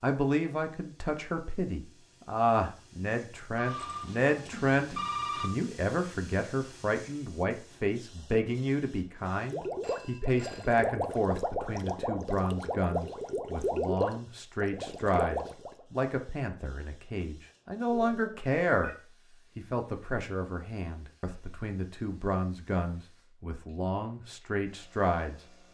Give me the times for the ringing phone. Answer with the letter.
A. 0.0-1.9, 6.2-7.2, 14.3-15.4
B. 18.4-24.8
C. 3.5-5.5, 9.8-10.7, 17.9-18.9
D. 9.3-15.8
C.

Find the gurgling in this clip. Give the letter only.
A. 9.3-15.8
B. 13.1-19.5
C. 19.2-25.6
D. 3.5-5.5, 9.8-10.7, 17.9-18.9
A.